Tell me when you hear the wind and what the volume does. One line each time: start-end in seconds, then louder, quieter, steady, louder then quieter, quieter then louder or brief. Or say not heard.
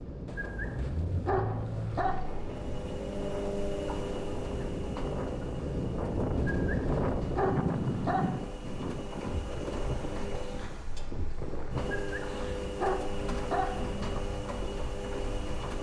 0.0-15.7 louder then quieter.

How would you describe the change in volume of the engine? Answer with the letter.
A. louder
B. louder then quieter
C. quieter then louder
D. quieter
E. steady
C.